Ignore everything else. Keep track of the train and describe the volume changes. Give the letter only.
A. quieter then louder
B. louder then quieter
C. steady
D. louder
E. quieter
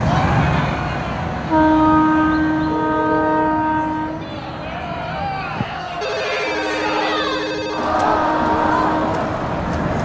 A.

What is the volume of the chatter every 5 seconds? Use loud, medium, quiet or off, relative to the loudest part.
medium, loud.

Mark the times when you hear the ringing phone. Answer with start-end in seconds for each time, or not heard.
2.6-3.5, 6.0-8.0.